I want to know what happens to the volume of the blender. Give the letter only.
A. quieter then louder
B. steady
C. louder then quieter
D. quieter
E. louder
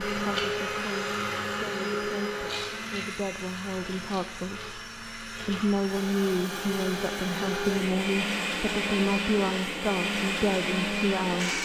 A.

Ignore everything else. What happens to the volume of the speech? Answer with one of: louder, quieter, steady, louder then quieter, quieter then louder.
louder.